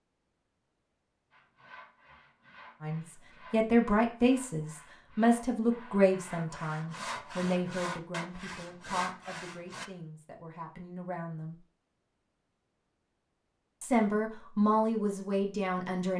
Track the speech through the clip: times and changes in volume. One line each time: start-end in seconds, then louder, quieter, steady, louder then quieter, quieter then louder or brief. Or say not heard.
2.8-11.6 quieter
13.8-16.1 brief.